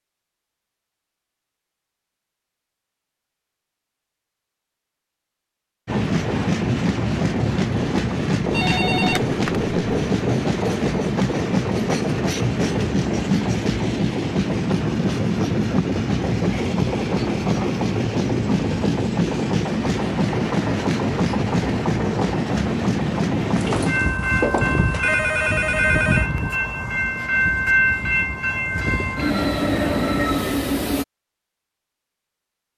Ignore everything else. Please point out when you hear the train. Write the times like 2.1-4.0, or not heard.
5.8-31.1.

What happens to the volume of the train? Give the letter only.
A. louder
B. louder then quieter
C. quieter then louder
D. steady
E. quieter
D.